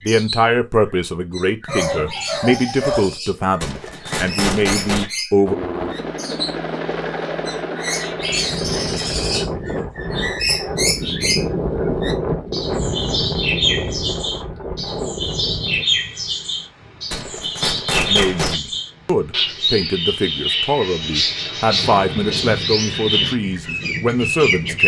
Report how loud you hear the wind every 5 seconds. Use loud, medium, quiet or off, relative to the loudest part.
off, loud, loud, medium, medium.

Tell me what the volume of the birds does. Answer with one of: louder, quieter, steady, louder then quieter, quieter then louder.
louder.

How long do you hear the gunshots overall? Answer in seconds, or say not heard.
3 s.